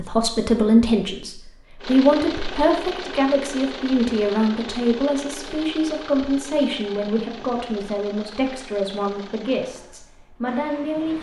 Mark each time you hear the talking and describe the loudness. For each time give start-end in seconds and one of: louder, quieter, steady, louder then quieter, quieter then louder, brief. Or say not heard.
0.0-11.1 quieter.